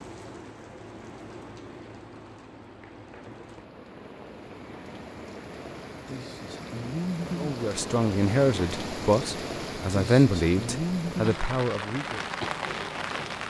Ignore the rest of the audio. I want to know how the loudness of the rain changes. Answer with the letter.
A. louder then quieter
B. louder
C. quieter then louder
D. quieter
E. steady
B.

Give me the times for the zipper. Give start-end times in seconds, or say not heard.
not heard.